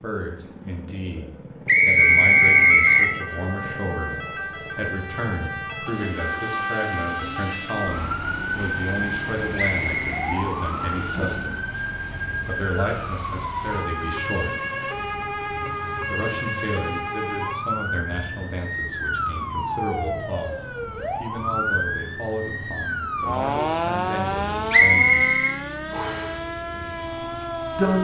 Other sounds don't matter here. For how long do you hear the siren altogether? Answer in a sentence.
The siren can be heard for 26 seconds in total.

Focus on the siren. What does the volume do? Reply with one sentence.
The volume of the siren stays about the same.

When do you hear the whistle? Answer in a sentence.
The whistle can be heard from 1.6 to 3.1 s, from 9.6 to 11.1 s and from 24.7 to 26.2 s.